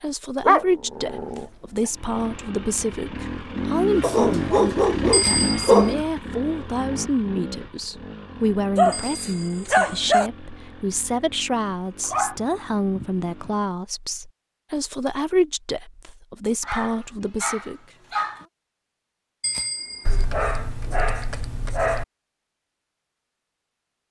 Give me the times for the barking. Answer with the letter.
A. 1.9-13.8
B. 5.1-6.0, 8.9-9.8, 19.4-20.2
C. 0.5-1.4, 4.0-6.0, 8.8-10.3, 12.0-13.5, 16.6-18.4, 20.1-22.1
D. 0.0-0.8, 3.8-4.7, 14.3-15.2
C.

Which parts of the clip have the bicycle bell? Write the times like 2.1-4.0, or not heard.
5.1-6.0, 8.9-9.8, 19.4-20.2.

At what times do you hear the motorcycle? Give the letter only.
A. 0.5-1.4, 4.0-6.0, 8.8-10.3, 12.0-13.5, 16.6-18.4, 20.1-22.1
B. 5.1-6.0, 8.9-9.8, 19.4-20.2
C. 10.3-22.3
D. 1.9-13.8
D.